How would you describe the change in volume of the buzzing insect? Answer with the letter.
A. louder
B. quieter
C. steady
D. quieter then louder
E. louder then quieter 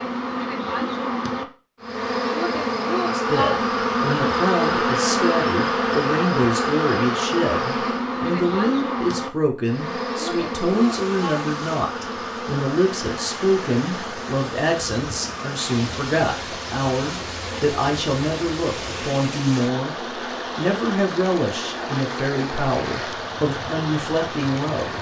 B.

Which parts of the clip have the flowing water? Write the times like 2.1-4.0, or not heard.
10.6-24.9.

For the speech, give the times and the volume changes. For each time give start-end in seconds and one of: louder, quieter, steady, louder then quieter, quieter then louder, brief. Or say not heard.
3.0-24.9 steady.